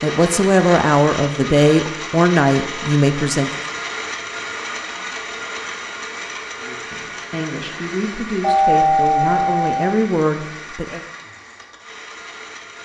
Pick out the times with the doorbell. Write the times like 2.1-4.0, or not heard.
8.4-9.8.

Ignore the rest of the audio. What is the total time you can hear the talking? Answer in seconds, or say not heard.
8 s.